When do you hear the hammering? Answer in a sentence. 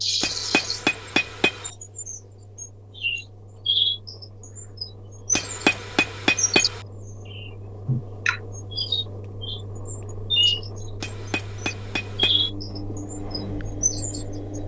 You can hear the hammering from 0.2 to 1.7 s, from 5.3 to 6.8 s and from 11.0 to 12.5 s.